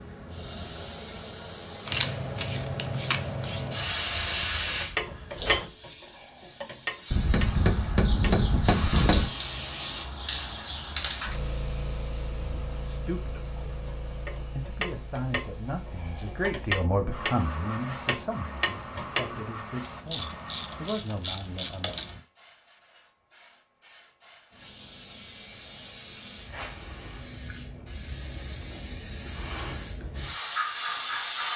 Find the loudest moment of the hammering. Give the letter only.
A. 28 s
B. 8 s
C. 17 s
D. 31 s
B.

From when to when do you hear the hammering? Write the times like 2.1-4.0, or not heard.
7.1-9.3.